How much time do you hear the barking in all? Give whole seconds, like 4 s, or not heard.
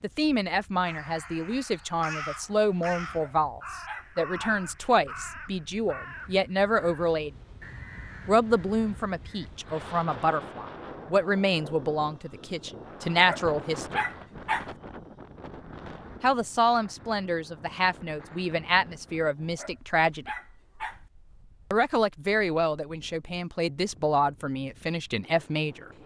5 s.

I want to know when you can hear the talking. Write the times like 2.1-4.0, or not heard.
0.0-7.3, 8.2-14.1, 16.2-20.2, 21.7-25.9.